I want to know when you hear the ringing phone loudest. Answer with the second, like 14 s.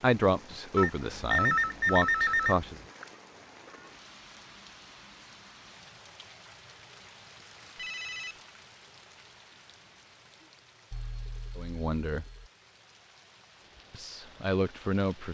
1 s.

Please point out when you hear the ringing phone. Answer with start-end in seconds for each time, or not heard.
0.8-2.7, 7.8-8.3, 10.9-12.5.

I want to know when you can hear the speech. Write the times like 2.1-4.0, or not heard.
0.0-2.8, 11.6-12.2, 13.9-15.2.